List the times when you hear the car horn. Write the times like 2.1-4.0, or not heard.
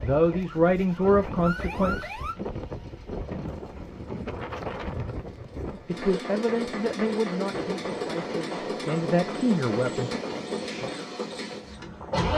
not heard.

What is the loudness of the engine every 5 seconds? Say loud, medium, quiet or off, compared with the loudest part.
quiet, loud, loud.